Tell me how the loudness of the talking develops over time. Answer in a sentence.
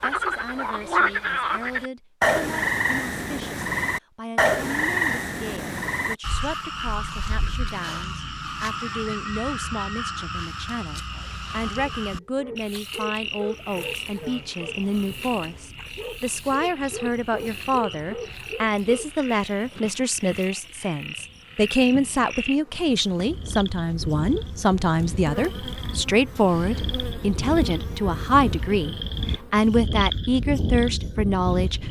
The volume of the talking goes up.